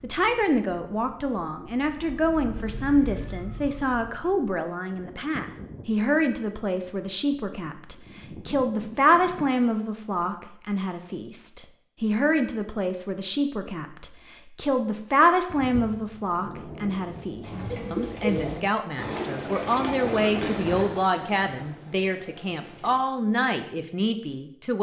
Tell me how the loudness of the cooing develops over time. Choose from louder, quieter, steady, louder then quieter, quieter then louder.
quieter.